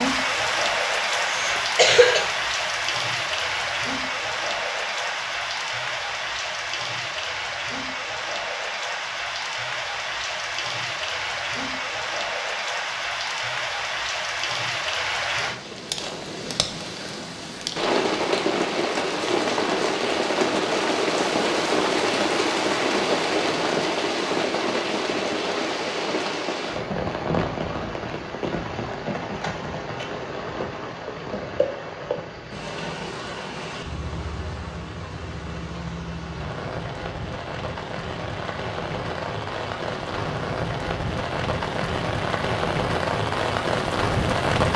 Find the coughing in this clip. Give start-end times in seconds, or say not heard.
1.1-2.2.